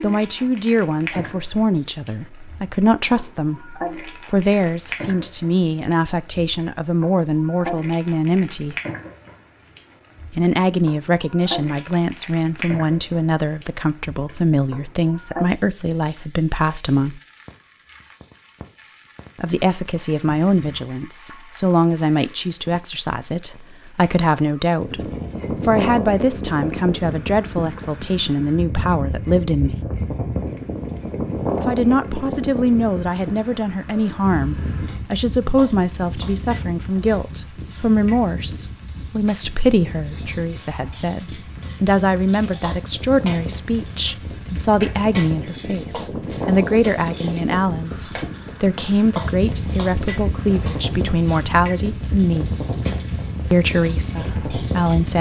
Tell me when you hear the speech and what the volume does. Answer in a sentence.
The speech can be heard from 0.0 to 8.8 s, at a steady volume; from 10.3 to 17.2 s, at a steady volume; from 19.4 to 29.8 s, at a steady volume; from 31.6 to 52.5 s, at a steady volume; and briefly from 53.5 to 55.1 s.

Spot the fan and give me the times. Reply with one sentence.
You can hear the fan from 24.8 to 55.1 s.